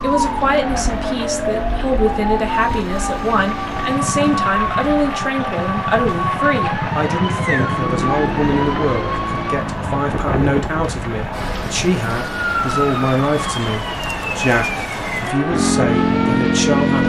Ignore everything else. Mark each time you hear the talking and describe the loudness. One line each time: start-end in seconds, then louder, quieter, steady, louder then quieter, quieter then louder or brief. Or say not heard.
0.0-17.0 steady.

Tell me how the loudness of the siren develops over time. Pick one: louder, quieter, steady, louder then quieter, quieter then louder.
steady.